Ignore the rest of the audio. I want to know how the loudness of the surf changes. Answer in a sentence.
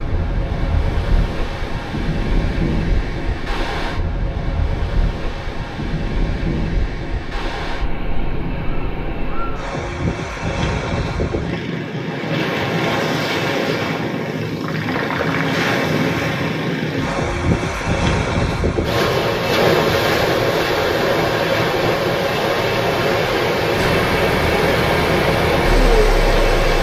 The volume of the surf goes up.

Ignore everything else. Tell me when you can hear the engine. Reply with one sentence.
You can hear the engine from 23.7 to 26.7 s.